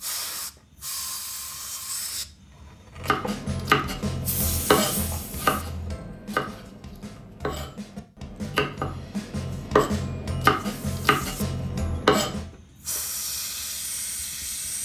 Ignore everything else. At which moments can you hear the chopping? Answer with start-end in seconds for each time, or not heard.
3.0-12.5.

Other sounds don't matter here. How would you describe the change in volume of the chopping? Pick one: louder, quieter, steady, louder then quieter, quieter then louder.
quieter then louder.